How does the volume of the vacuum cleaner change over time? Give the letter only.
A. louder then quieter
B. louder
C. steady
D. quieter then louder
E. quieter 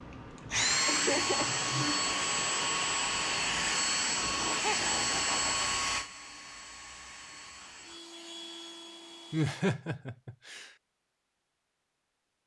E.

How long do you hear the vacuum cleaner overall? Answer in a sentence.
The vacuum cleaner can be heard for 10 seconds in total.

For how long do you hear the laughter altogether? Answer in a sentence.
You can hear the laughter for 4 seconds altogether.